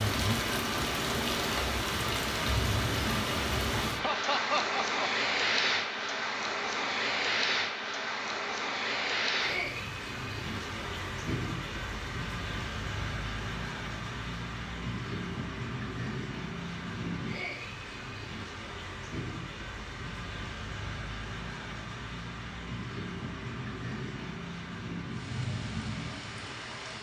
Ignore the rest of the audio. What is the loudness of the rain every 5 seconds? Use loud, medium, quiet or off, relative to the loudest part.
loud, loud, medium, medium, medium, medium.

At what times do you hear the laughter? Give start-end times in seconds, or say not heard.
4.0-5.0.